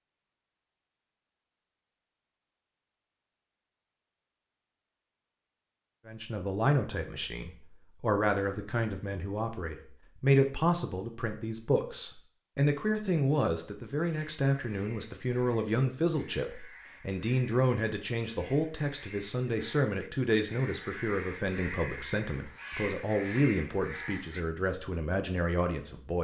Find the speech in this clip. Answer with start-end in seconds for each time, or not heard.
6.0-26.1.